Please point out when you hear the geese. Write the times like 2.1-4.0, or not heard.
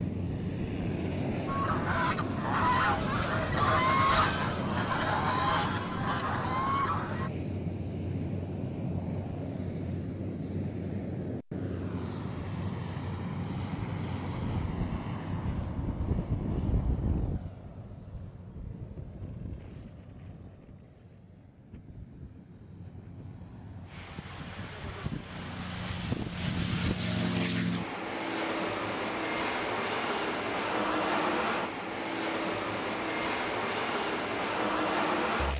1.4-7.3.